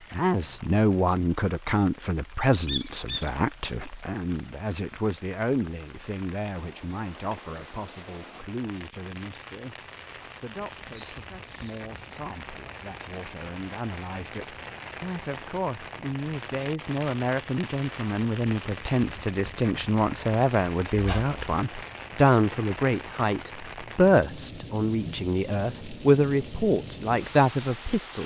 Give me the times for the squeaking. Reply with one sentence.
The squeaking can be heard from 2.6 to 3.4 s, from 10.9 to 11.9 s and from 20.9 to 21.4 s.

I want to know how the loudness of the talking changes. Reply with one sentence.
The loudness of the talking goes down, then up.